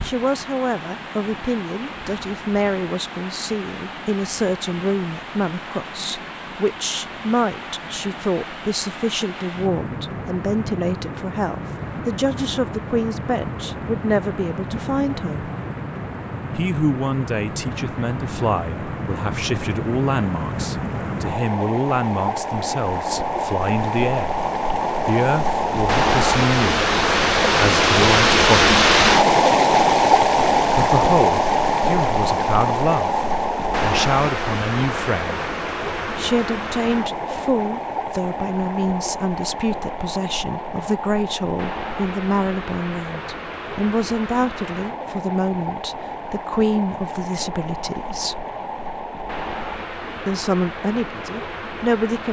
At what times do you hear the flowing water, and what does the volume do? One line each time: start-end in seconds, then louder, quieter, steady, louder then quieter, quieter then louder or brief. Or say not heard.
0.0-52.2 louder then quieter.